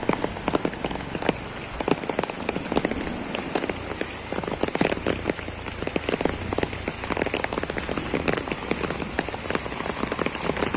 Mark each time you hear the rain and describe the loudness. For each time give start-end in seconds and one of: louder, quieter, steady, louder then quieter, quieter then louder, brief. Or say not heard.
0.0-10.7 steady.